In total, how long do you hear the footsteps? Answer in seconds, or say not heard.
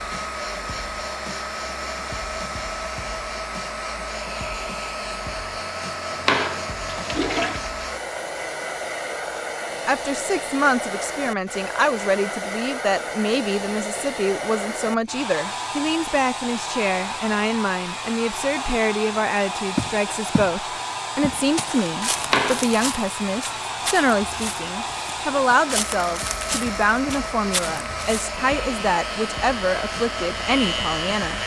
8 s.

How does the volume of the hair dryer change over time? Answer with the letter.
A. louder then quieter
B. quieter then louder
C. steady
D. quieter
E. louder
C.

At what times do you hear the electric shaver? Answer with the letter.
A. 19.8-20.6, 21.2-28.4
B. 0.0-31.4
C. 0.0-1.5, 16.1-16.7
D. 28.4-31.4
D.